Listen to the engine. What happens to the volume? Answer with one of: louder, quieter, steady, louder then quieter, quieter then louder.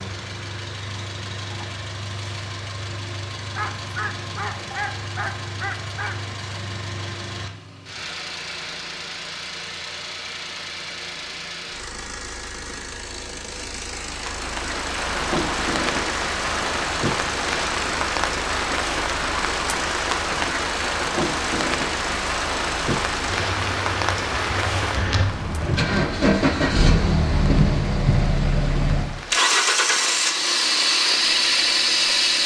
louder.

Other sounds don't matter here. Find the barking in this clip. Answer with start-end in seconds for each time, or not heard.
3.5-6.2.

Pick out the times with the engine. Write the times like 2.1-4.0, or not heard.
0.0-32.4.